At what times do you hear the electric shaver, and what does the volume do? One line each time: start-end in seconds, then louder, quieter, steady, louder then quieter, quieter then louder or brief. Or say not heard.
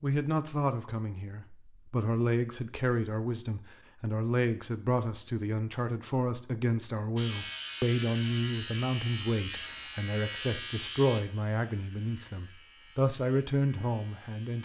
7.2-14.6 quieter.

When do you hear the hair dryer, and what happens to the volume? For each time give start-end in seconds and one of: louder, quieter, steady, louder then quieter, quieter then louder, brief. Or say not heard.
not heard.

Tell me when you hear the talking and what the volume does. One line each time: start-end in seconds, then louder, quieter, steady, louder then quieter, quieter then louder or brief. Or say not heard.
0.0-14.6 steady.